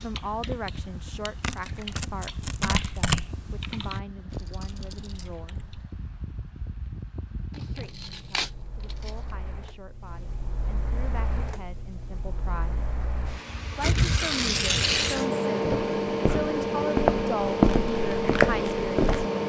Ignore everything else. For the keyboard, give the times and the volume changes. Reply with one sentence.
You can hear the keyboard from 0.0 to 5.9 s, getting louder then quieter.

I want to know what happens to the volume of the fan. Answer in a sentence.
The loudness of the fan goes up.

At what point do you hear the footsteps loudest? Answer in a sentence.
The loudest moment of the footsteps is at 18 seconds.